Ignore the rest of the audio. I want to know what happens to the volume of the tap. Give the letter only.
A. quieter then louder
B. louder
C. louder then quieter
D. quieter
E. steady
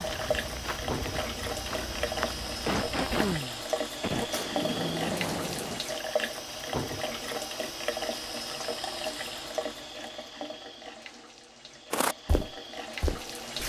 D.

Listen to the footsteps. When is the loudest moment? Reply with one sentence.
The volume of the footsteps peaks at 12 seconds.